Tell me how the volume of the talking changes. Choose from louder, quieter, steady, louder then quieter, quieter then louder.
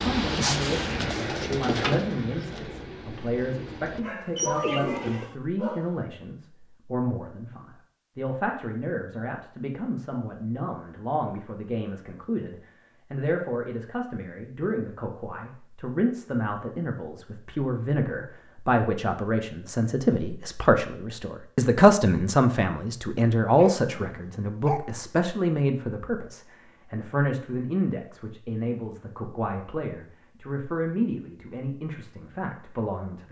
louder then quieter.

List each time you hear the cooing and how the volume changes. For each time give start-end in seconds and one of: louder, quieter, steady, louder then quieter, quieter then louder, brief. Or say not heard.
0.0-5.3 quieter then louder.